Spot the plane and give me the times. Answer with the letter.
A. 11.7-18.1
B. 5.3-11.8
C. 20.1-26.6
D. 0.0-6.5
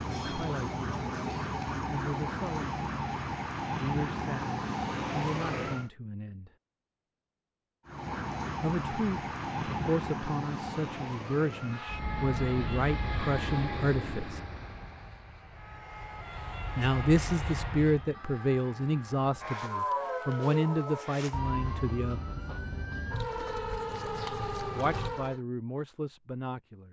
A.